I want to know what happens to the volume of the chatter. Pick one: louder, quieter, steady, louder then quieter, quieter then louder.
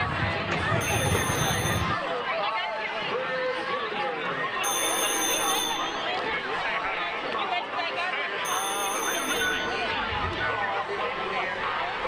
steady.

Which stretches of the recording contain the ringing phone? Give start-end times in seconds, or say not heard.
0.8-1.9, 4.6-6.0, 8.4-9.7.